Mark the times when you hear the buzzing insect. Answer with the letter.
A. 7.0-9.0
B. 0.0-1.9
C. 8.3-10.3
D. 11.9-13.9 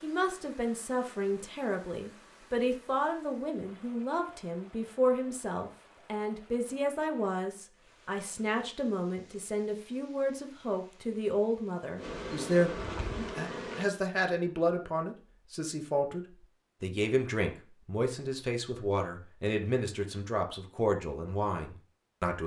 D.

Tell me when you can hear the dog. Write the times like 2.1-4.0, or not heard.
not heard.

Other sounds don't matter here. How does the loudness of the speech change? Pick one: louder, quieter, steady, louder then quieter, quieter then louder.
steady.